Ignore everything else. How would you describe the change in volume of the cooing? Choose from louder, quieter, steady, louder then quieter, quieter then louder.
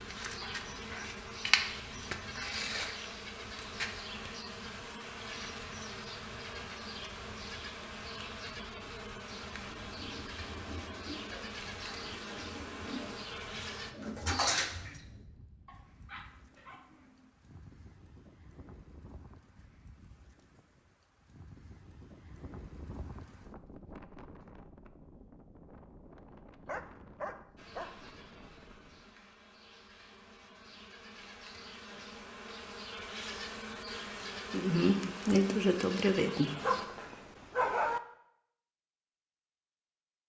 louder.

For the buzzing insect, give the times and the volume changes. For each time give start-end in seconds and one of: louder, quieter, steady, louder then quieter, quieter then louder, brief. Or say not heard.
0.0-13.9 quieter
27.6-36.9 louder.